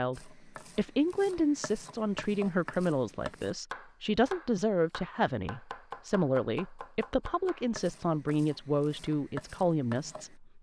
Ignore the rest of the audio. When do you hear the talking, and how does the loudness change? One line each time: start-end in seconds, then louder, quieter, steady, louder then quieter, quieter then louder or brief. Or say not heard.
0.0-10.5 steady.